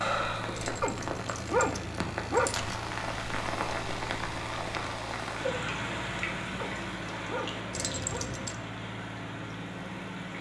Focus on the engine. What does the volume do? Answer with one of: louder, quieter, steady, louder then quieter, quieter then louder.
steady.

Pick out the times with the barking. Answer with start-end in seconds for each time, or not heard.
0.8-2.5, 6.5-8.2.